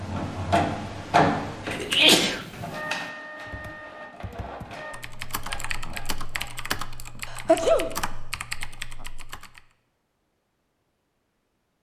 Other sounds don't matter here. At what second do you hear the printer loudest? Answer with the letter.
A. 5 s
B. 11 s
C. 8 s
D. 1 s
D.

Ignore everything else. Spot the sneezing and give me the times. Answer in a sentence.
You can hear the sneezing from 1.7 to 2.4 s and from 7.2 to 7.9 s.